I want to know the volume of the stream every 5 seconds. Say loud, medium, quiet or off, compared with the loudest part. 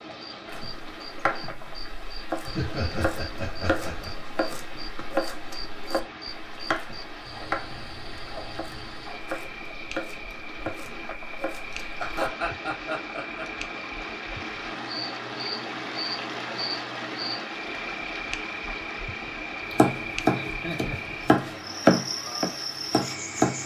medium, medium, loud, loud, medium.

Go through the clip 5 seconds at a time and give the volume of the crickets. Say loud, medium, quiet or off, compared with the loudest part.
medium, medium, medium, loud, loud.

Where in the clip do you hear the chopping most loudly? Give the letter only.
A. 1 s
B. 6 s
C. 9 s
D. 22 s
D.